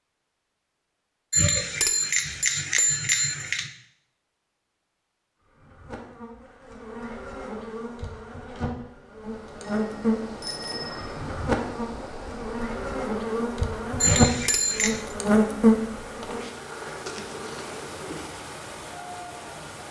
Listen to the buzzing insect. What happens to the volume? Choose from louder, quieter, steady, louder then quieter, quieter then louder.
louder.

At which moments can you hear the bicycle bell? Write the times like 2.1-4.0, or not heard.
1.3-3.7, 9.7-11.2, 14.0-15.0.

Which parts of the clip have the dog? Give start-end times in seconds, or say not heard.
not heard.